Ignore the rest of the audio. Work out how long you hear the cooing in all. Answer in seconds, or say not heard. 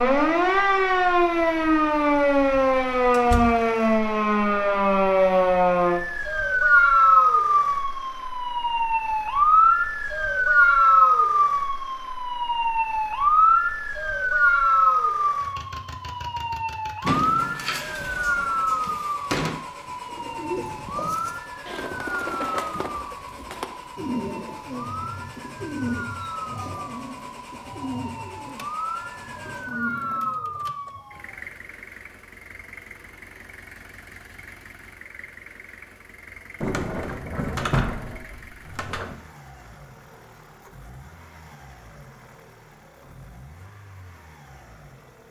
11 s.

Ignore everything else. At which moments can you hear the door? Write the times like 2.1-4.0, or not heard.
3.1-3.6, 17.0-19.6, 36.6-39.1.